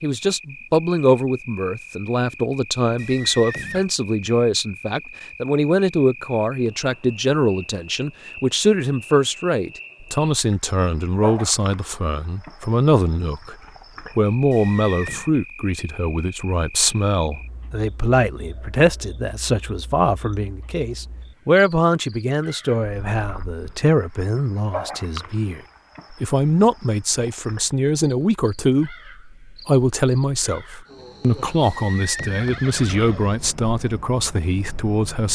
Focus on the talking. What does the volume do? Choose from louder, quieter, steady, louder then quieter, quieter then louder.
steady.